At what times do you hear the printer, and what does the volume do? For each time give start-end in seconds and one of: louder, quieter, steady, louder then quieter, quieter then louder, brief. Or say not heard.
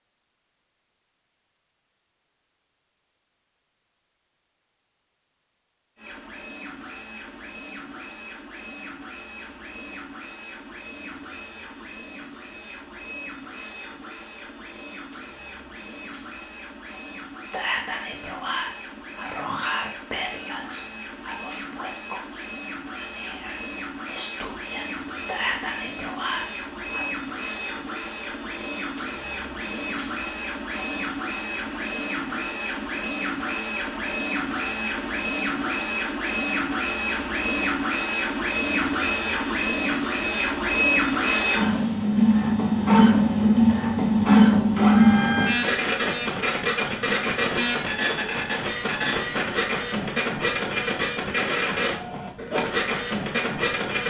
6.0-54.0 louder.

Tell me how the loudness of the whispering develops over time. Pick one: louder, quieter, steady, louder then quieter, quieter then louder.
quieter then louder.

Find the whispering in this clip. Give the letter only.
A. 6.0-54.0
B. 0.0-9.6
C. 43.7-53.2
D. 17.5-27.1
D.